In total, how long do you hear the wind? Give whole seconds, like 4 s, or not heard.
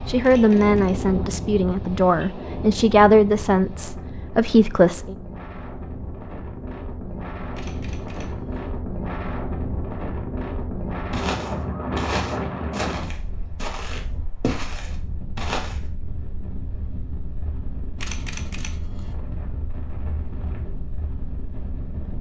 22 s.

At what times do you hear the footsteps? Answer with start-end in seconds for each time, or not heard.
11.1-15.8.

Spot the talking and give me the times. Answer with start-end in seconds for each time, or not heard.
0.1-5.2.